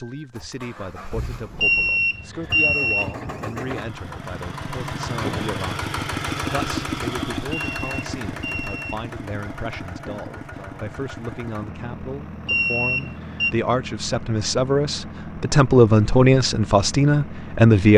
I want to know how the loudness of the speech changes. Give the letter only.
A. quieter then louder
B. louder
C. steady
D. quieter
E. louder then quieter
B.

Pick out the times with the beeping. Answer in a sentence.
The beeping can be heard from 1.6 to 3.1 s, from 7.5 to 9.1 s and from 12.4 to 13.6 s.